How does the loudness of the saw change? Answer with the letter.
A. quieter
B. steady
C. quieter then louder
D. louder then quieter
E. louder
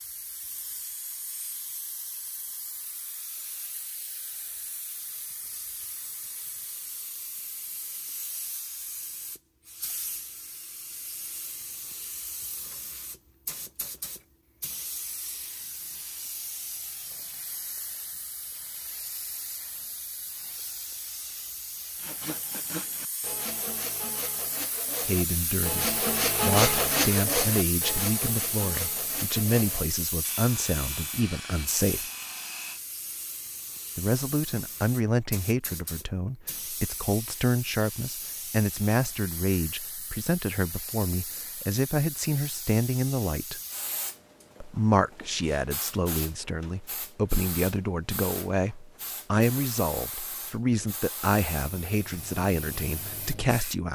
D.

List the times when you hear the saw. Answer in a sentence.
You can hear the saw from 21.9 to 32.8 s.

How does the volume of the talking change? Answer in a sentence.
The loudness of the talking stays about the same.